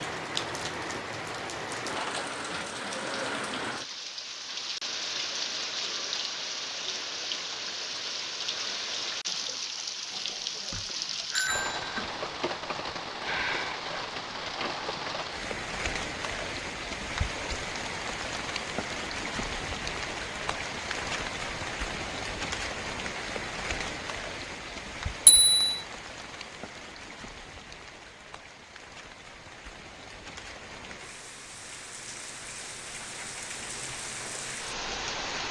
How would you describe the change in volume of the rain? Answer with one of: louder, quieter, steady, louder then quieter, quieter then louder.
quieter.